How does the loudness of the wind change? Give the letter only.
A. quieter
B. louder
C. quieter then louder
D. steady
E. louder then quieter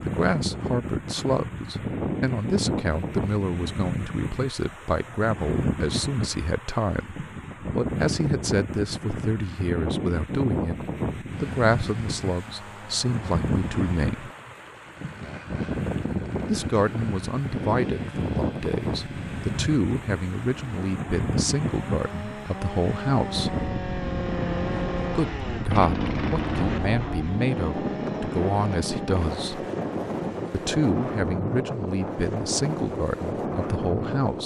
D.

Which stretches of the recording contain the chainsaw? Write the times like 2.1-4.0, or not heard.
11.3-31.1.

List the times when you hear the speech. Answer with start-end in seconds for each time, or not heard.
0.0-14.3, 16.4-23.6, 25.1-29.6, 30.5-34.4.